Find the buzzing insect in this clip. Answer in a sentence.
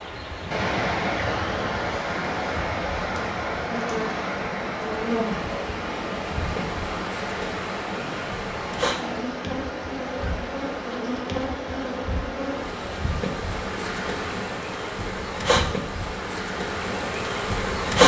You can hear the buzzing insect from 0.0 to 18.0 s.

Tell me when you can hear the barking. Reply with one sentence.
You can't hear the barking here.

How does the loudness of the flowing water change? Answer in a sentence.
The volume of the flowing water goes down.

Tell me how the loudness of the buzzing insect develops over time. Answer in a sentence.
The volume of the buzzing insect goes up.